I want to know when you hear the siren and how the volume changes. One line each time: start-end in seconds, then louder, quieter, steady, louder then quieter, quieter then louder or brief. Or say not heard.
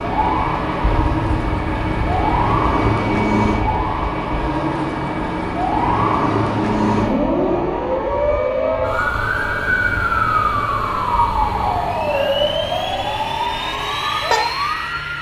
0.0-15.1 steady.